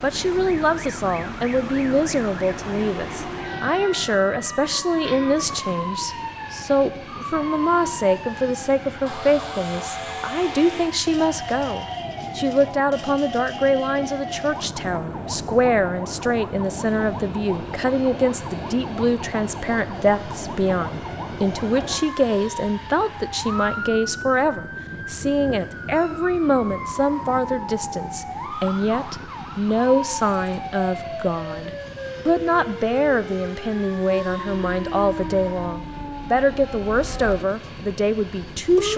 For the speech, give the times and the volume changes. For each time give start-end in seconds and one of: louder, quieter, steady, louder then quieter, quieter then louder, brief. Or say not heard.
0.0-38.9 steady.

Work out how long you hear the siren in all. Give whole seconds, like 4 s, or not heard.
39 s.